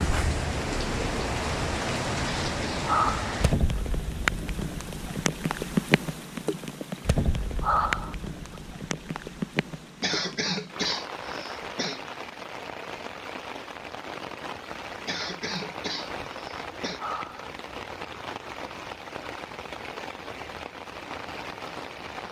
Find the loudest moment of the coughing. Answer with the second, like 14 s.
10 s.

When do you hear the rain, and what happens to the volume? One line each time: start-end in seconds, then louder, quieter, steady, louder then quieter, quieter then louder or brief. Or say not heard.
0.0-22.2 quieter.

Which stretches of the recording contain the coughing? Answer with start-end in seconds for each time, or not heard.
2.5-3.0, 10.0-12.0, 15.1-17.0.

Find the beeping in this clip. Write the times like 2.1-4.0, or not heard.
not heard.